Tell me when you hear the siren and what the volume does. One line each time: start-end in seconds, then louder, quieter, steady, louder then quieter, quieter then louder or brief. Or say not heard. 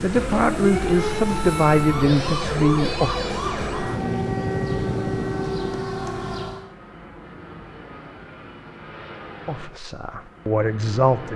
0.0-6.7 steady.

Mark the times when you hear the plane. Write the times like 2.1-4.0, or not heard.
0.0-11.3.